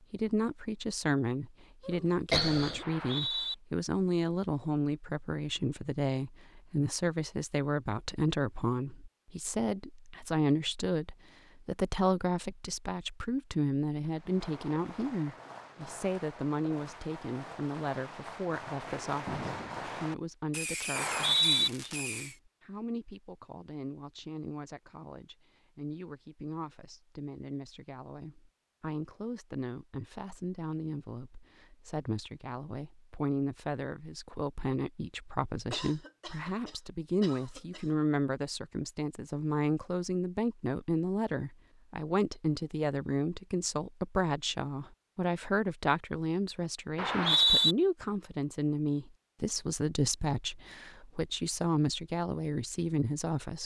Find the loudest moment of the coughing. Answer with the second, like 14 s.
2 s.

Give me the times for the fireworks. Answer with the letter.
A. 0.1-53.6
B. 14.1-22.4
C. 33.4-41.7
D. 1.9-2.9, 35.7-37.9
B.